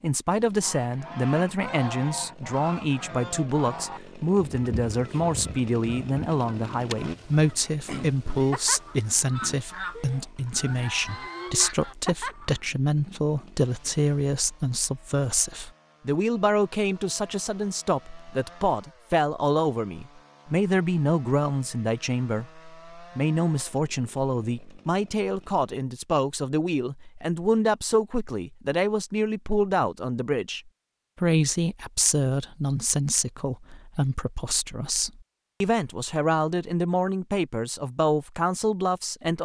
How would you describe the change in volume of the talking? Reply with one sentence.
The volume of the talking stays about the same.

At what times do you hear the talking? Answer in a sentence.
You can hear the talking from 0.0 to 39.4 s.